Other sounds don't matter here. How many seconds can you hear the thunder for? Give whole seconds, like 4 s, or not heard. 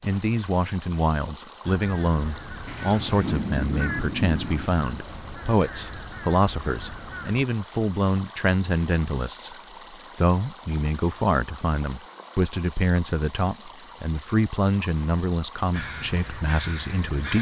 2 s.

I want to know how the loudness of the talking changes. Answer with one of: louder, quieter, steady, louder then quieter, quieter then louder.
steady.